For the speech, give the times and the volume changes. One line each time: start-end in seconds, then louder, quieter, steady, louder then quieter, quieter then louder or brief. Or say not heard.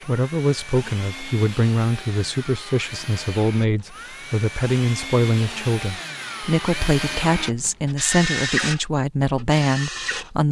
0.1-10.4 steady.